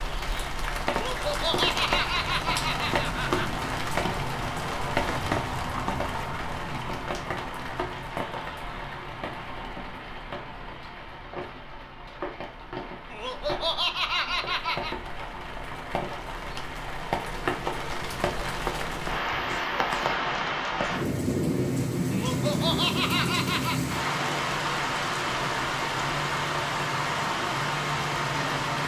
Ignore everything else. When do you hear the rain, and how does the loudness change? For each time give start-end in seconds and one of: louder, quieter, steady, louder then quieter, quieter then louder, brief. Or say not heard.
0.0-28.8 quieter then louder.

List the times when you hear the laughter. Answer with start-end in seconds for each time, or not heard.
0.9-3.6, 13.1-14.9, 22.1-23.8.